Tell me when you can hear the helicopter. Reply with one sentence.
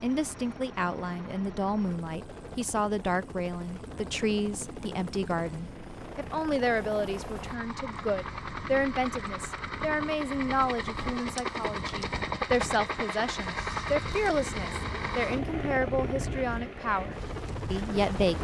The helicopter can be heard from 0.0 to 18.3 s.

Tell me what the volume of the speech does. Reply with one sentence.
The volume of the speech stays about the same.